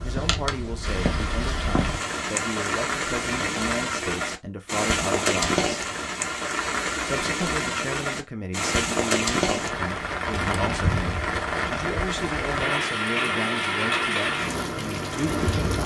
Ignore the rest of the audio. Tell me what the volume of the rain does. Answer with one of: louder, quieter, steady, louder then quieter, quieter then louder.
steady.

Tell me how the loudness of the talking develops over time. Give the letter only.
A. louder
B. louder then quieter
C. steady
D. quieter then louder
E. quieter
C.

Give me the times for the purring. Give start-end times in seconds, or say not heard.
not heard.